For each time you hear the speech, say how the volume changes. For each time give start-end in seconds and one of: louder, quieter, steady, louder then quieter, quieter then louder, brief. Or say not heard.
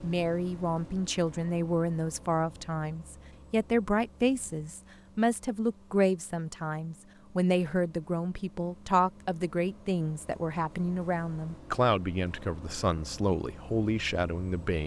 0.0-14.8 steady.